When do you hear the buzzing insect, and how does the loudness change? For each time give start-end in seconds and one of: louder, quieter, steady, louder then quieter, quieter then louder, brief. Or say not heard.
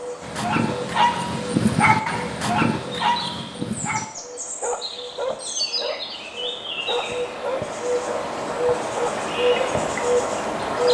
0.0-10.8 louder.